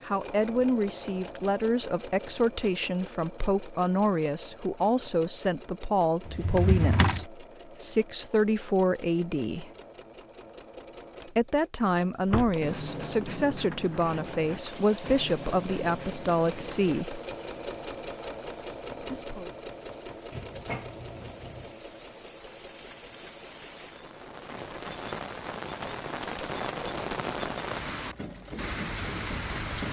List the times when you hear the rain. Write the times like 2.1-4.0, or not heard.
14.6-29.8.